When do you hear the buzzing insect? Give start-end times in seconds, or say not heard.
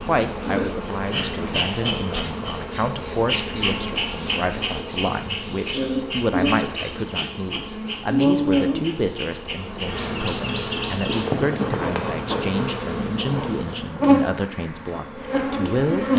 0.0-16.1.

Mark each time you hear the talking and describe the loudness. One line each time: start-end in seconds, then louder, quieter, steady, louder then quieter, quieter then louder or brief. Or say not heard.
0.1-16.1 steady.